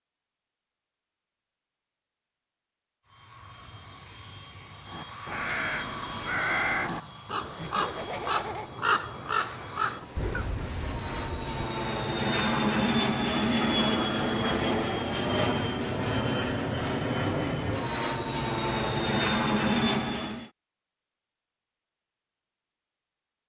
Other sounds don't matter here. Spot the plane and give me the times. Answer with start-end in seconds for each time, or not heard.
3.1-20.5.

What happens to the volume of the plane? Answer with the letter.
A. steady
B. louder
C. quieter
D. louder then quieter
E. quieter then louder
B.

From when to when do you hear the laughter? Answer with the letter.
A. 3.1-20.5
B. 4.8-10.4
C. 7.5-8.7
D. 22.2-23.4
C.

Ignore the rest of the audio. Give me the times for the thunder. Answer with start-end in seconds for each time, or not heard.
10.2-11.7.